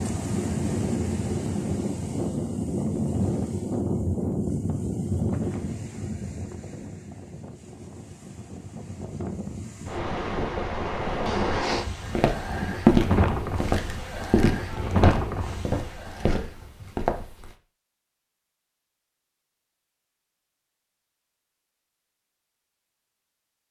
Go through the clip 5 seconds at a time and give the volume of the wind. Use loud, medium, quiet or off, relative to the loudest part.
loud, medium, loud, loud, off.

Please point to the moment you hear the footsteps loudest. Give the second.
13 s.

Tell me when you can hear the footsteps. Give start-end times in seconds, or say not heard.
12.2-17.5.